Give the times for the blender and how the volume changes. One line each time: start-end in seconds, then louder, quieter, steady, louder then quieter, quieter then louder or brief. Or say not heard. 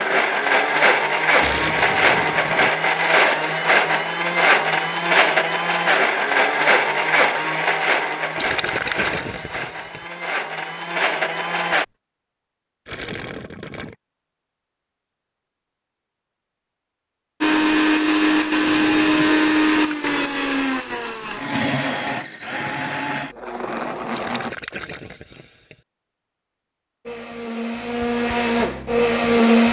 0.0-11.8 quieter
17.4-24.5 quieter
27.1-29.6 brief.